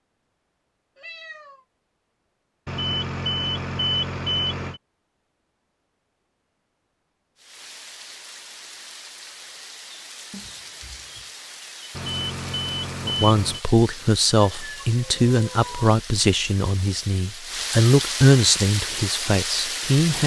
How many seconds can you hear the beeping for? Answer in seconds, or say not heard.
4 s.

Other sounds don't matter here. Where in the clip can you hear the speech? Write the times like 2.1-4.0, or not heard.
13.1-20.2.